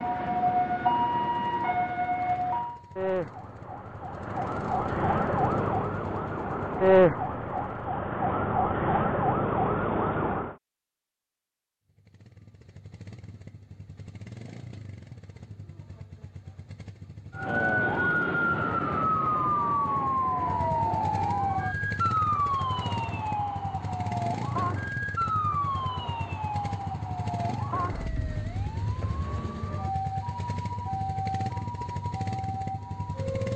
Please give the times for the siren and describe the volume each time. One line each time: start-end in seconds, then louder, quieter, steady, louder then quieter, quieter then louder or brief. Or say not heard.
0.0-10.6 quieter then louder
17.4-33.5 quieter.